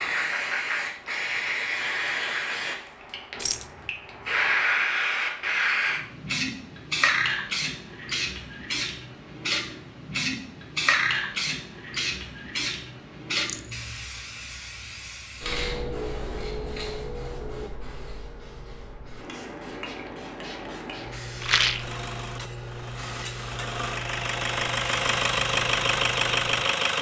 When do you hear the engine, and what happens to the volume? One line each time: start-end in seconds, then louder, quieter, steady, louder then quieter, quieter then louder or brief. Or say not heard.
21.6-26.9 louder.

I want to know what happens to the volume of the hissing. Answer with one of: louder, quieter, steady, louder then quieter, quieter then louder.
quieter.